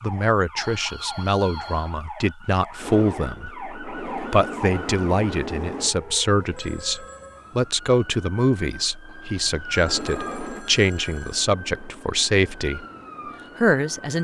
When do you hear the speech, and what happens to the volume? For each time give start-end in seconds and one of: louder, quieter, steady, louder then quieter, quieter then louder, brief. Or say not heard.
0.0-12.8 steady
13.6-14.1 brief.